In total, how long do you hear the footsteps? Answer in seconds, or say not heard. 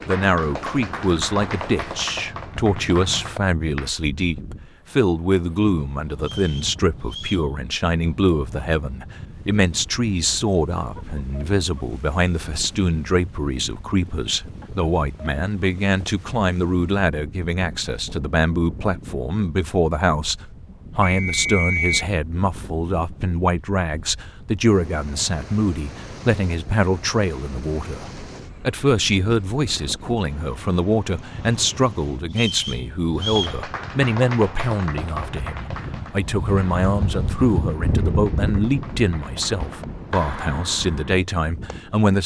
not heard.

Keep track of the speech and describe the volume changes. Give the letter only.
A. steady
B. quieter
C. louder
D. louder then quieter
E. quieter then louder
A.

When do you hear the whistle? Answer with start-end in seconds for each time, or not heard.
6.2-7.5, 21.0-22.1, 32.4-33.6.